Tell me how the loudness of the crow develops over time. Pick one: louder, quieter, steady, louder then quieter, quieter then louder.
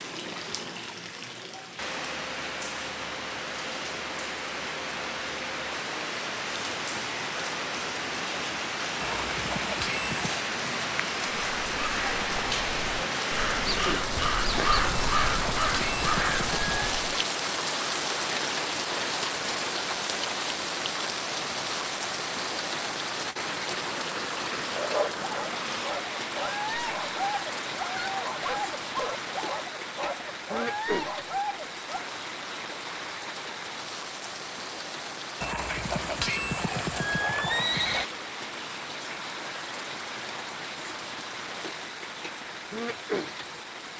louder.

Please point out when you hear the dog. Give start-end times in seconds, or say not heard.
24.7-32.0.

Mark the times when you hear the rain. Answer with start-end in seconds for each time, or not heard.
0.0-43.9.